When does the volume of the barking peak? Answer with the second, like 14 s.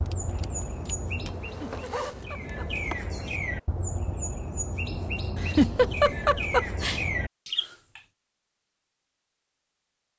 2 s.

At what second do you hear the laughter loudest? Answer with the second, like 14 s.
6 s.